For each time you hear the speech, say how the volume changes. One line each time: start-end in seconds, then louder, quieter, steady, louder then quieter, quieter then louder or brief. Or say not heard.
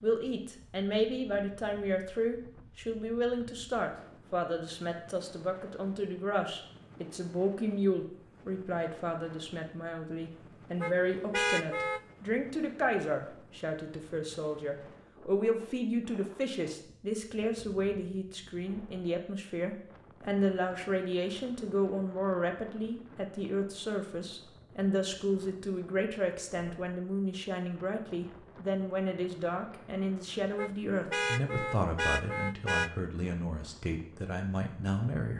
0.0-35.3 steady.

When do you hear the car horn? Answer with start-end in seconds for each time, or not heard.
10.8-12.1, 30.6-32.9.